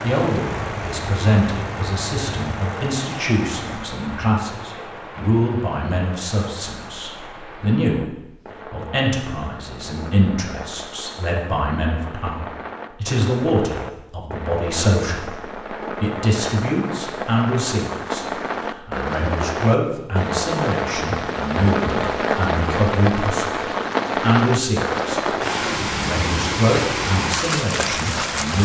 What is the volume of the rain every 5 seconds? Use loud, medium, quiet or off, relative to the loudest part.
medium, quiet, medium, medium, loud, loud.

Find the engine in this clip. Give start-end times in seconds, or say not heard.
0.0-4.0.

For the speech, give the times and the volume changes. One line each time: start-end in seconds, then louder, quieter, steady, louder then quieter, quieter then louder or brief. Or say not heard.
0.0-28.6 steady.